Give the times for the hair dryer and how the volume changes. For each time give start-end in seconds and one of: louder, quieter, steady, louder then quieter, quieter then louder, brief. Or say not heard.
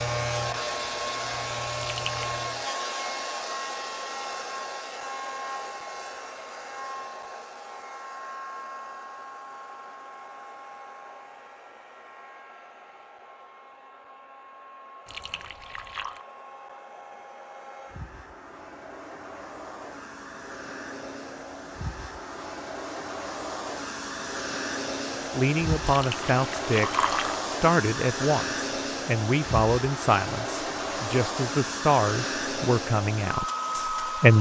0.0-34.3 quieter then louder.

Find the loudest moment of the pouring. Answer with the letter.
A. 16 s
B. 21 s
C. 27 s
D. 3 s
C.